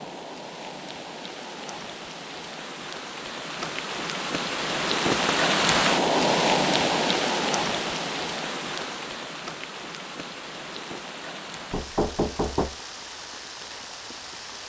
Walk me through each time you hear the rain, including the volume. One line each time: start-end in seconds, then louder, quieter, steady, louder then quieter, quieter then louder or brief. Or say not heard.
0.0-14.6 louder then quieter.